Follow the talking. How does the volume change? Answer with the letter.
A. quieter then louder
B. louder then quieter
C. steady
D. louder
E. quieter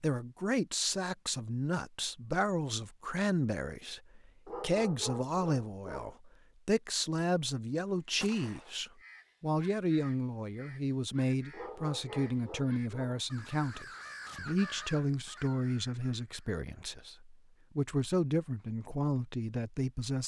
C.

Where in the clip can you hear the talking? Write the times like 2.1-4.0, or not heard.
0.0-20.2.